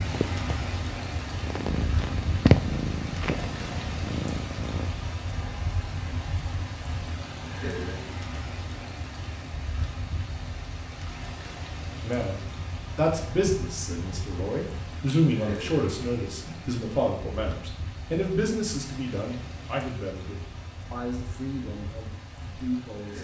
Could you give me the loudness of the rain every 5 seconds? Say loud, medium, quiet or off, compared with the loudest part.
loud, loud, medium, medium, medium.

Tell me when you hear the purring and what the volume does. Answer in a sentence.
You can hear the purring from 0.0 to 4.9 s, getting louder then quieter.